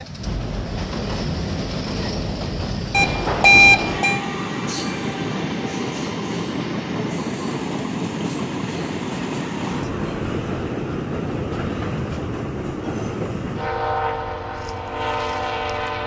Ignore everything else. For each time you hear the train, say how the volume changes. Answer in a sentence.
You can hear the train from 0.0 to 16.0 s, at a steady volume.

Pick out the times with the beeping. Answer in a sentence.
The beeping can be heard from 2.9 to 4.2 s.